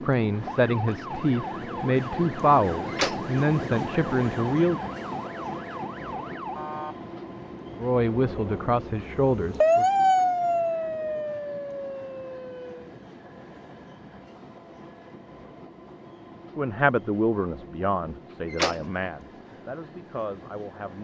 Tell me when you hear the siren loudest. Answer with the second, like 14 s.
10 s.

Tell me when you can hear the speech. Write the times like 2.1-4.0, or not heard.
0.0-4.8, 7.8-9.8, 16.6-20.9.